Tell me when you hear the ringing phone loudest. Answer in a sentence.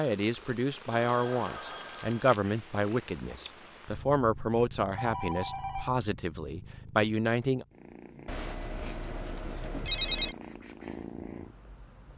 The volume of the ringing phone peaks at 10 seconds.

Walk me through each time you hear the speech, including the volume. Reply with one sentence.
The speech can be heard from 0.0 to 7.7 s, at a steady volume.